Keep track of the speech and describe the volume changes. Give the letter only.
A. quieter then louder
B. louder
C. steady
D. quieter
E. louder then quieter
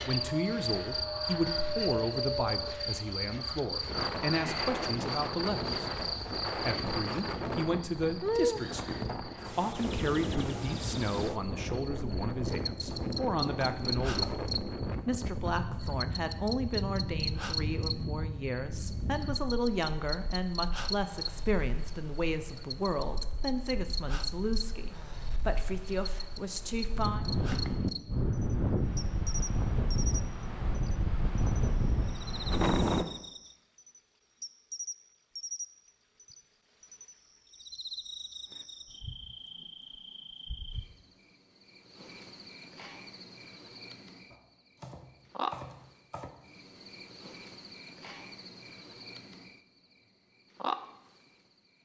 C.